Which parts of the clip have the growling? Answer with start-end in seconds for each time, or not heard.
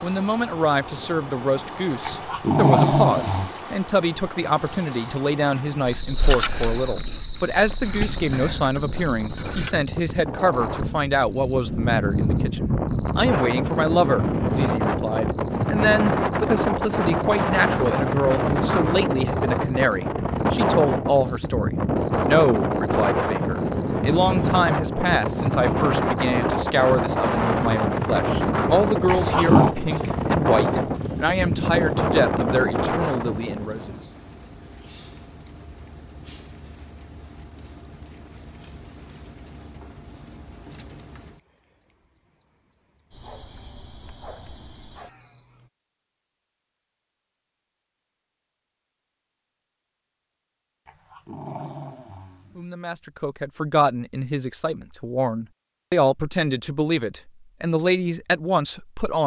2.0-3.5, 29.1-29.8, 50.9-52.6.